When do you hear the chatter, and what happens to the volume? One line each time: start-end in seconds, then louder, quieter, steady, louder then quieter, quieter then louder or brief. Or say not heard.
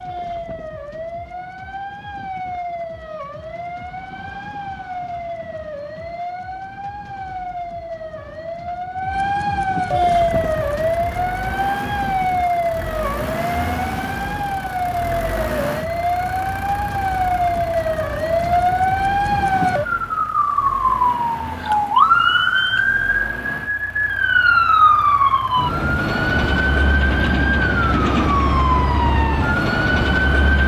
not heard.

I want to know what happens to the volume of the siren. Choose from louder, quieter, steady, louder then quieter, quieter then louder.
louder.